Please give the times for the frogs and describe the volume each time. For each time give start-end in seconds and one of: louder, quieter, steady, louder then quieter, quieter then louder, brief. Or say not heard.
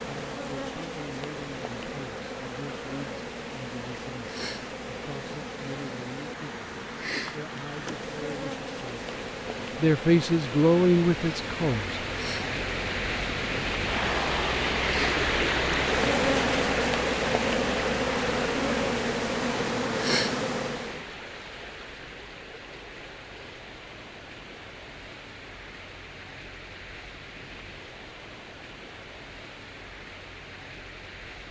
not heard.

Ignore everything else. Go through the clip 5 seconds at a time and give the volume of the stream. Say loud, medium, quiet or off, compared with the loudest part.
quiet, quiet, loud, loud, quiet, quiet, quiet.